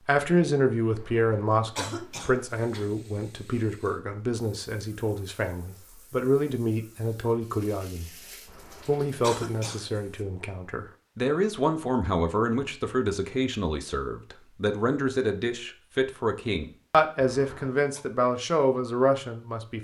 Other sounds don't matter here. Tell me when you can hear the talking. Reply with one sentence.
The talking can be heard from 0.1 to 8.2 s and from 8.8 to 19.7 s.